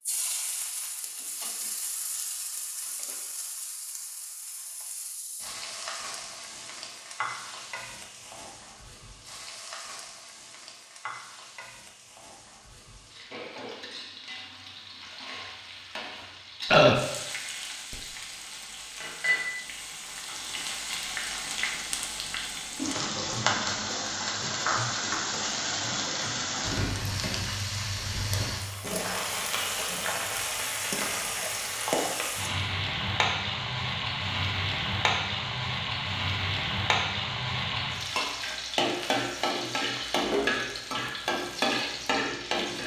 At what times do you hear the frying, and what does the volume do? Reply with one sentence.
You can hear the frying from 0.0 to 42.8 s, getting louder.